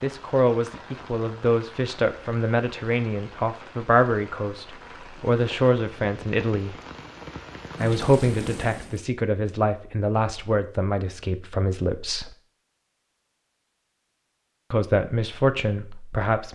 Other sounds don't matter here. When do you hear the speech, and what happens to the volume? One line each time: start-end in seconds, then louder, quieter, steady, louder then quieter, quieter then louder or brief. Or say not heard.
0.0-6.8 steady
7.8-12.3 steady
14.7-16.5 brief.